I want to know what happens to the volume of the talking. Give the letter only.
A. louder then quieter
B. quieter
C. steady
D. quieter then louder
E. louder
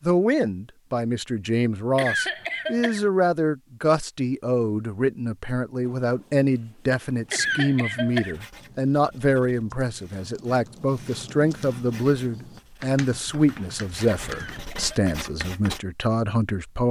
C.